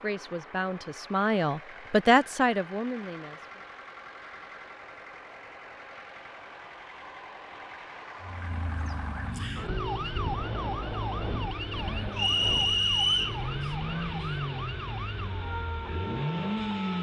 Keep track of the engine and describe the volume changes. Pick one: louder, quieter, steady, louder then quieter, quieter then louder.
louder.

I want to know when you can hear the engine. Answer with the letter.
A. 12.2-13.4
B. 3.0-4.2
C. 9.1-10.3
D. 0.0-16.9
D.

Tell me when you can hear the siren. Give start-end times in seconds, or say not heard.
8.2-16.9.